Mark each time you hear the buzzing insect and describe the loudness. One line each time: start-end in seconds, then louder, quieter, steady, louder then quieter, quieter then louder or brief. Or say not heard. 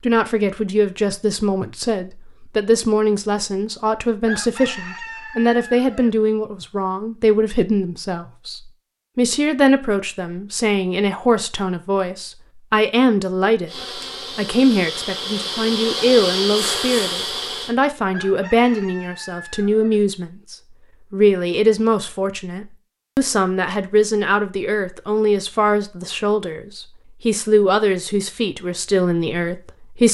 13.7-17.8 louder.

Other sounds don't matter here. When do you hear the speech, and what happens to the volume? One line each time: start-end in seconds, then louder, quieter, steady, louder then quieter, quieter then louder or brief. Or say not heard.
0.0-30.0 steady.